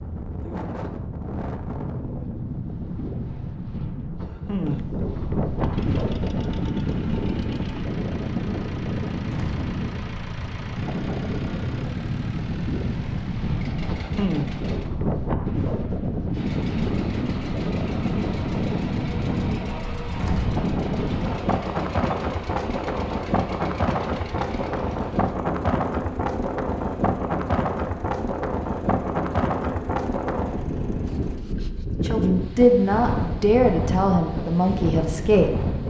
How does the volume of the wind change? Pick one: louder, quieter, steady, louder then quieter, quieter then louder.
steady.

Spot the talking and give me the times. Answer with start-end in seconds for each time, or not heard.
32.0-35.8.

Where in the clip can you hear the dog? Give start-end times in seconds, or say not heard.
not heard.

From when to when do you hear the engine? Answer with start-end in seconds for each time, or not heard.
5.5-14.9, 16.3-31.4.